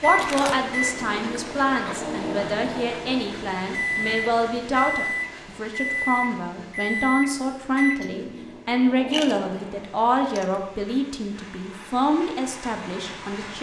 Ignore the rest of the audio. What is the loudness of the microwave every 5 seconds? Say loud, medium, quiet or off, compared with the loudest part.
loud, loud, off.